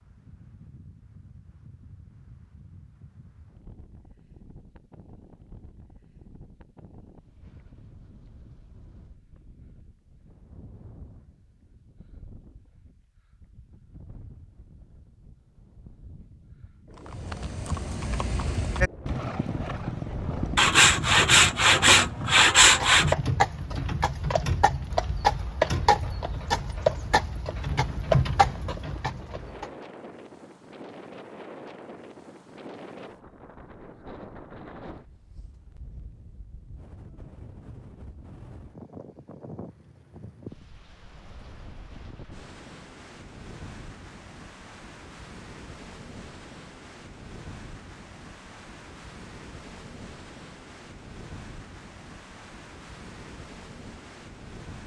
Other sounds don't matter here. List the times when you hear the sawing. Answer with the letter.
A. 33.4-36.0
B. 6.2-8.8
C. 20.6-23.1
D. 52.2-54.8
C.